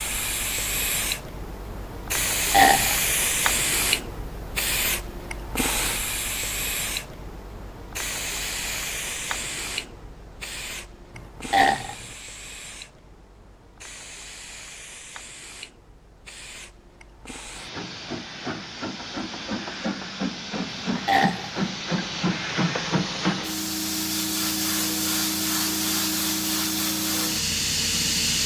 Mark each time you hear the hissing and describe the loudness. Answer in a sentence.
The hissing can be heard from 0.0 to 28.4 s, getting quieter then louder.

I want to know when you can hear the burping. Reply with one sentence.
The burping can be heard from 2.1 to 3.0 s, from 11.2 to 12.1 s and from 20.7 to 21.6 s.